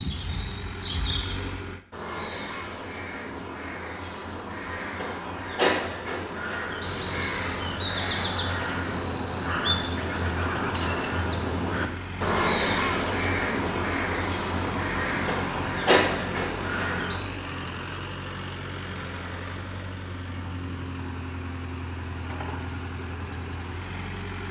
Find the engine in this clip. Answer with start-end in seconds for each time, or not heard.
0.0-1.9, 6.8-24.4.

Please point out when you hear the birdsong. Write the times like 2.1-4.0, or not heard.
0.0-17.2.